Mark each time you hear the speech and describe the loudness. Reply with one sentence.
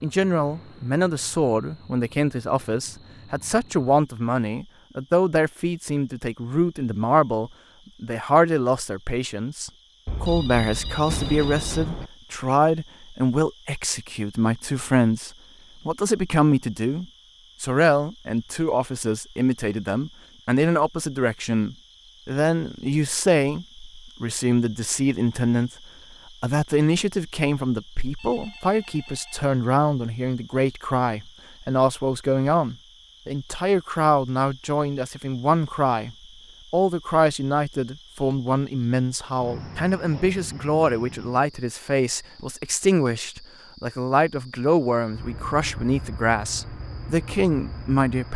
You can hear the speech from 0.0 to 25.7 s, at a steady volume; and from 26.4 to 48.3 s, at a steady volume.